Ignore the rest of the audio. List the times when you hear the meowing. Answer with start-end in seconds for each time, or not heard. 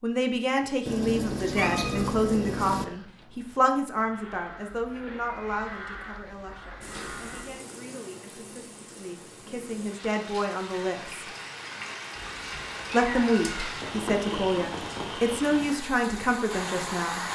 0.8-2.9, 12.1-13.8.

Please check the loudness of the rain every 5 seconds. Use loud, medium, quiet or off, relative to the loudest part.
off, medium, loud, loud.